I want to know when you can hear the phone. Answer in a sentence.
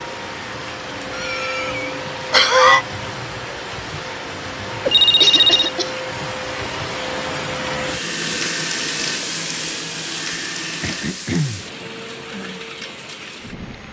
The phone can be heard from 4.8 to 5.7 s.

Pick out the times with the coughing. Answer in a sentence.
You can hear the coughing from 1.1 to 2.9 s, from 5.2 to 6.0 s and from 10.8 to 11.7 s.